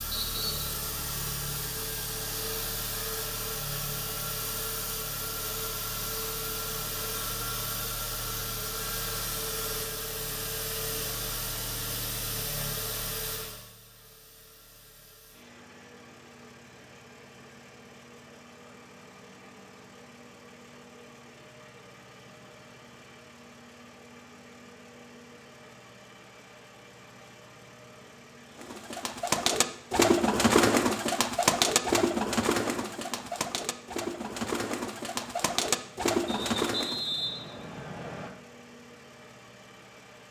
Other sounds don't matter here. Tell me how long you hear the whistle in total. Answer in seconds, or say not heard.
3 s.